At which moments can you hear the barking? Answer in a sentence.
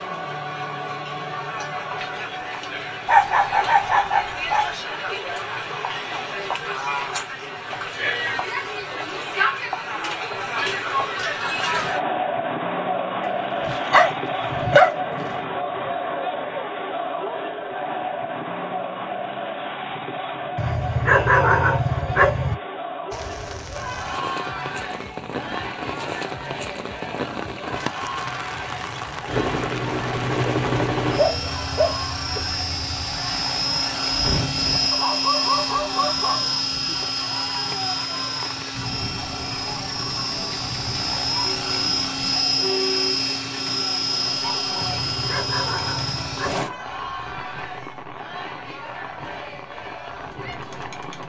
You can hear the barking from 3.0 to 4.7 s, from 13.2 to 14.9 s, from 20.6 to 22.6 s, from 31.1 to 32.4 s, from 34.9 to 36.5 s and from 44.8 to 46.6 s.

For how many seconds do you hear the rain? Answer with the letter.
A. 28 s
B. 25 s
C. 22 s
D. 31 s
A.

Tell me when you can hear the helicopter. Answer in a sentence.
The helicopter can be heard from 29.2 to 46.7 s.